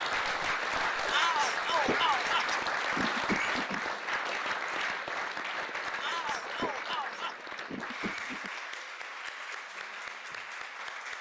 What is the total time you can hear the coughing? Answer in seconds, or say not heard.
4 s.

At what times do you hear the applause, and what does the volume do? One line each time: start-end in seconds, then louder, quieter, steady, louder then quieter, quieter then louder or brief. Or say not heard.
0.0-11.1 quieter.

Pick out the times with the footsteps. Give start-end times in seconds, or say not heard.
not heard.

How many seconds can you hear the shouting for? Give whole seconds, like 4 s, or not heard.
3 s.